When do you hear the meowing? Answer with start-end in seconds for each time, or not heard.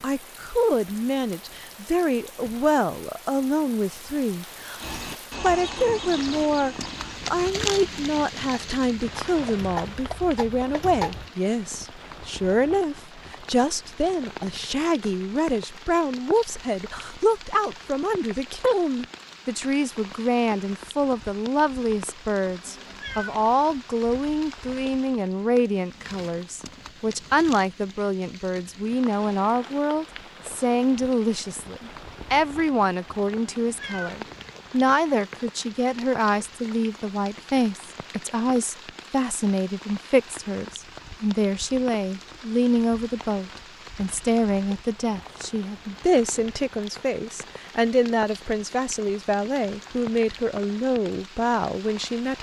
22.6-23.4, 33.4-34.2.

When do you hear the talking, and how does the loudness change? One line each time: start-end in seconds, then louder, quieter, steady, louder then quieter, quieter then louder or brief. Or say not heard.
0.0-52.3 steady.